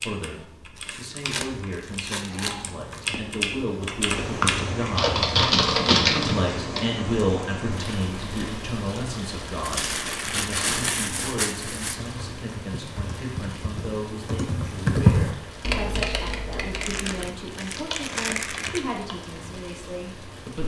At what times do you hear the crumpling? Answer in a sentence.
You can hear the crumpling from 0.8 to 3.2 s, from 9.6 to 12.0 s and from 16.8 to 18.9 s.